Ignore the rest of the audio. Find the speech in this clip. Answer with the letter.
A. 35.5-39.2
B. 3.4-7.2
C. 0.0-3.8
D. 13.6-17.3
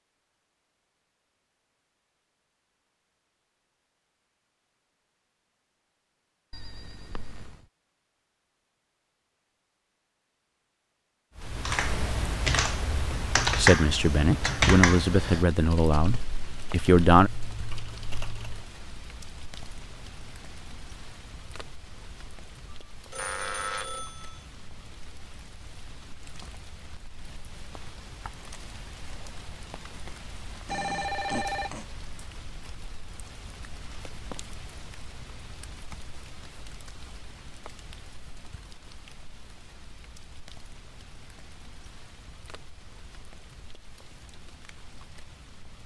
D.